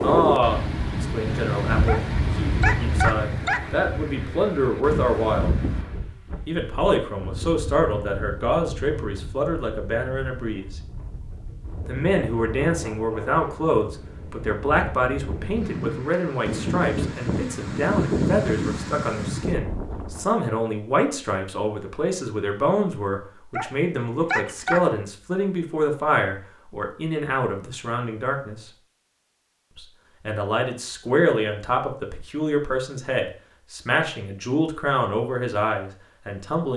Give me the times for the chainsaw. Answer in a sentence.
You can't hear the chainsaw here.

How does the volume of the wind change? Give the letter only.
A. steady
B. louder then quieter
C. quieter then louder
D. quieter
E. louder
C.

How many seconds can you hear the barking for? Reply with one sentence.
You can hear the barking for 3 seconds altogether.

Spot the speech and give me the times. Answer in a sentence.
You can hear the speech from 0.0 to 5.5 s, from 6.5 to 10.8 s, from 11.8 to 28.7 s and from 29.8 to 36.7 s.